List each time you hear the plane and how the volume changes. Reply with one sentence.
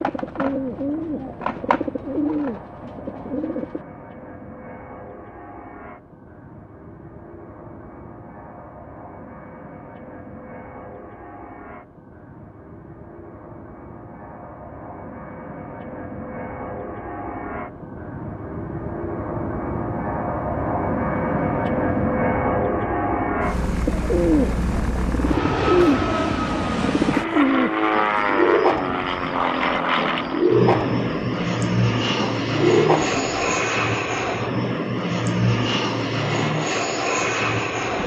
You can hear the plane from 0.0 to 38.0 s, getting louder.